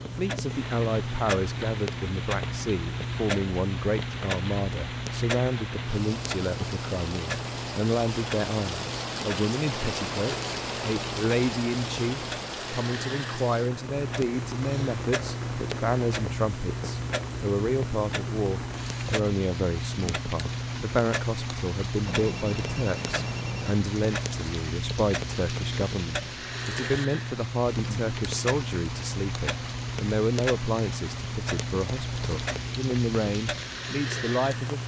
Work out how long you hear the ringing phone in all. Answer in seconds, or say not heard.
2 s.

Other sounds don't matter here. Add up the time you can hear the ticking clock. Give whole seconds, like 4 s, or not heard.
35 s.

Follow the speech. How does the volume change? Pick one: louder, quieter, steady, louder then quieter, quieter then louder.
steady.